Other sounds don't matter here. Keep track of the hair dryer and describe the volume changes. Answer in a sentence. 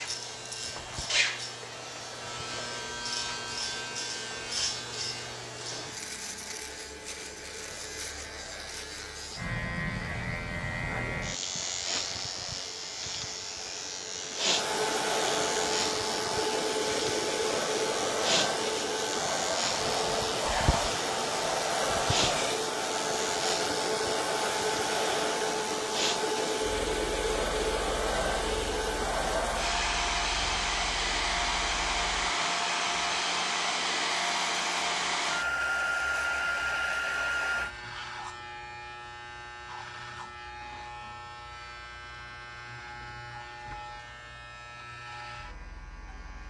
The volume of the hair dryer goes up.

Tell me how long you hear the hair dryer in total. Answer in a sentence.
The hair dryer can be heard for 38 seconds in total.